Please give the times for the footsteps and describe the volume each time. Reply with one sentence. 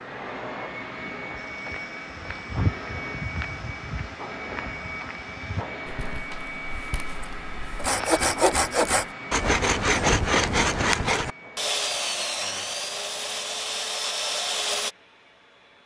The footsteps can be heard from 1.4 to 8.2 s, getting quieter.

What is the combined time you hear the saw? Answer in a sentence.
You can hear the saw for 7 seconds altogether.